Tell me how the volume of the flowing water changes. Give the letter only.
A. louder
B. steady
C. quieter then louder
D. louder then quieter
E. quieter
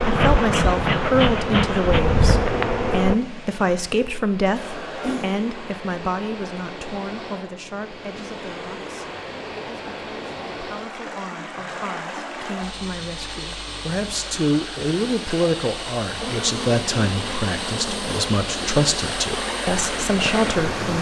A.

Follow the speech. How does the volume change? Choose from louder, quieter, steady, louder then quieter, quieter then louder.
quieter then louder.